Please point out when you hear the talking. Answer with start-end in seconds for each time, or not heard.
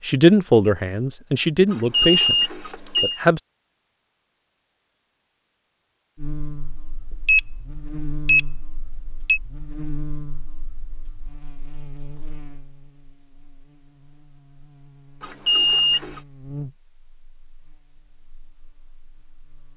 0.0-3.4.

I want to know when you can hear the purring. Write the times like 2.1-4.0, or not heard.
not heard.